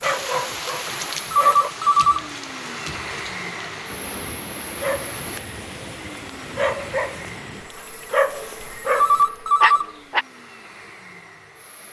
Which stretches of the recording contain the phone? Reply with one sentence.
The phone can be heard from 1.3 to 2.2 s and from 8.9 to 9.9 s.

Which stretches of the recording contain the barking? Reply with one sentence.
The barking can be heard from 0.0 to 1.7 s and from 4.8 to 10.2 s.